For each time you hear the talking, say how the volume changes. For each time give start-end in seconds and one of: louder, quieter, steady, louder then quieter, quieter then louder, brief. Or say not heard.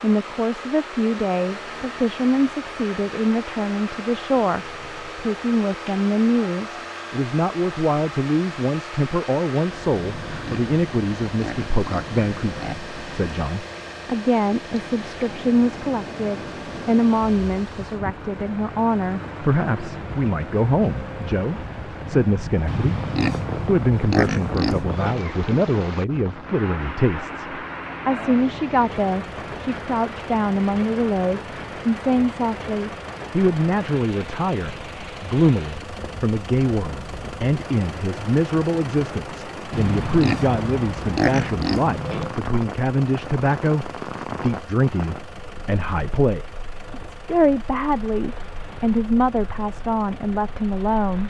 0.0-51.2 steady.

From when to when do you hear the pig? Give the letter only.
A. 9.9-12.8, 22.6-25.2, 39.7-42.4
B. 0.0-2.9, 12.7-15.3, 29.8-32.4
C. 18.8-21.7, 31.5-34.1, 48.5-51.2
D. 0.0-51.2
A.